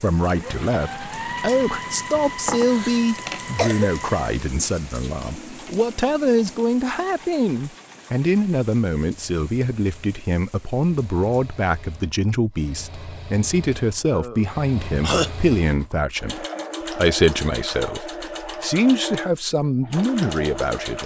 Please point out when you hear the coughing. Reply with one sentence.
The coughing can be heard from 2.1 to 3.9 s and from 14.1 to 15.3 s.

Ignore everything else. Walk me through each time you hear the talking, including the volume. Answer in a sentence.
The talking can be heard from 0.0 to 21.0 s, at a steady volume.